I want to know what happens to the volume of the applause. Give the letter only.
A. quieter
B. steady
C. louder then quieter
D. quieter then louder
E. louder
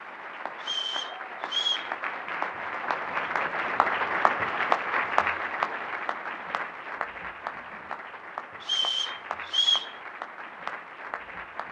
C.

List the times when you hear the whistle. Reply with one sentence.
You can hear the whistle from 0.6 to 1.9 s and from 8.6 to 9.9 s.